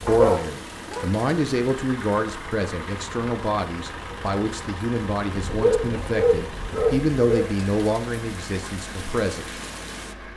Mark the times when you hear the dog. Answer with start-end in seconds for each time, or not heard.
0.1-1.1, 5.3-7.5.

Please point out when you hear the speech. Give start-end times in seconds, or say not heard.
0.0-9.4.